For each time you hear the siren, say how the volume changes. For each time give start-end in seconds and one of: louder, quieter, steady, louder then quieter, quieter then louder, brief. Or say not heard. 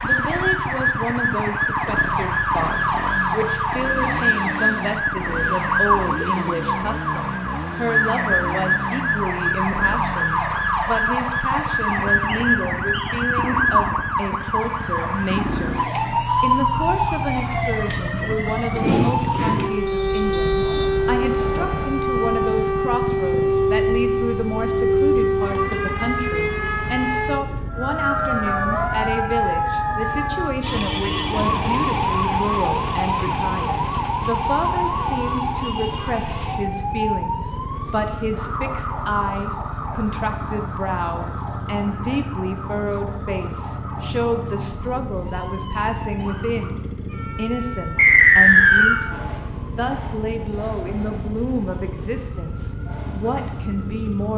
0.0-54.3 quieter.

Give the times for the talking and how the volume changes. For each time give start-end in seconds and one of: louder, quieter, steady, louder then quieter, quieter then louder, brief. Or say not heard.
0.0-15.8 steady
16.4-54.3 steady.